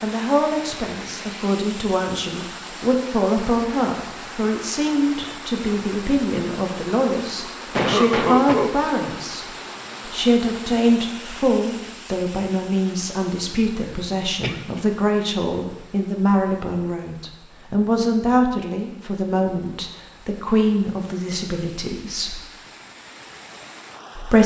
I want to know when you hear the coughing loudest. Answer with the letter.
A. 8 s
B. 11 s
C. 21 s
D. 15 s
A.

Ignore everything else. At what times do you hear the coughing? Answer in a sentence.
The coughing can be heard from 7.8 to 8.8 s and from 13.8 to 14.8 s.